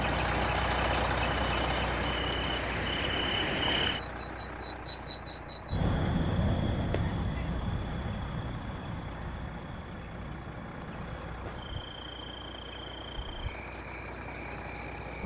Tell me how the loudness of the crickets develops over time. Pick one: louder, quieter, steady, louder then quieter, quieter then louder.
louder then quieter.